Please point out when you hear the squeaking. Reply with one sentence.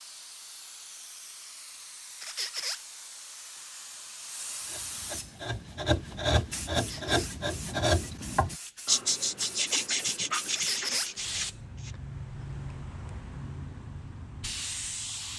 The squeaking can be heard from 2.2 to 2.8 s, from 6.7 to 7.3 s and from 10.5 to 11.1 s.